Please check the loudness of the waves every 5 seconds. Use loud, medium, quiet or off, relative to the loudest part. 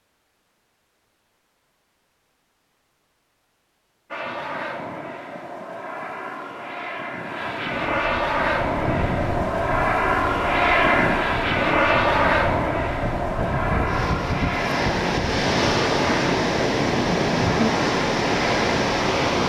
off, medium, medium, loud.